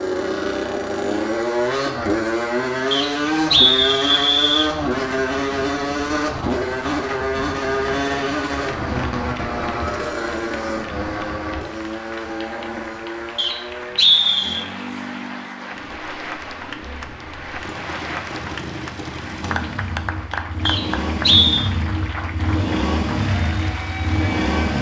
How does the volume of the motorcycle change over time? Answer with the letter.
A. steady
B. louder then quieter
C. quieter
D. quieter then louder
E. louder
D.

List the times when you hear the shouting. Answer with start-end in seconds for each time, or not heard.
not heard.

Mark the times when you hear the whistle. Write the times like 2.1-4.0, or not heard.
2.9-4.7, 13.3-14.6, 20.6-21.6.